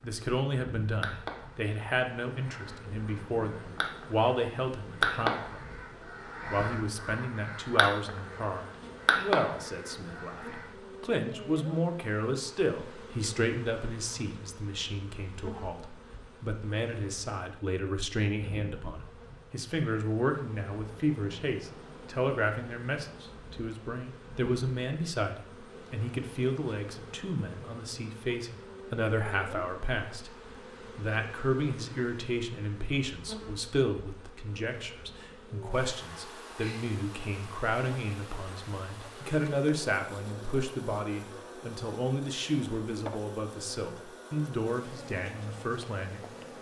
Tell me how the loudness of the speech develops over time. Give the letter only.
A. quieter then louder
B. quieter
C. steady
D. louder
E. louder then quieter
C.